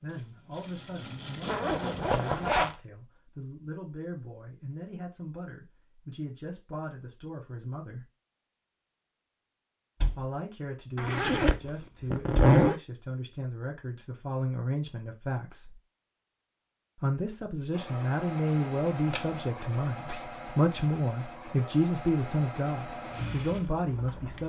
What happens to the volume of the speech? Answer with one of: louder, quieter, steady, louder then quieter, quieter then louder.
louder.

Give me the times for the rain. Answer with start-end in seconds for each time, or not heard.
not heard.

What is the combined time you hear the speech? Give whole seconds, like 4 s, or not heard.
21 s.